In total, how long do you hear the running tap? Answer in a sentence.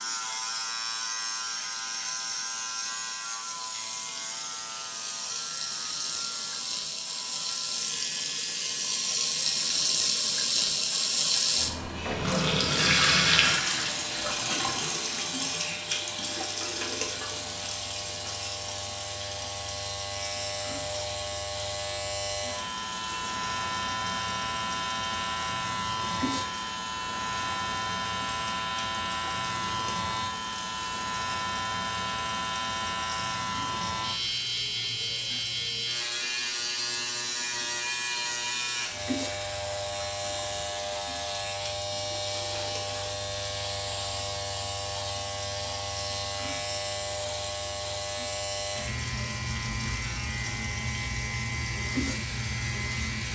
The running tap can be heard for 53 seconds in total.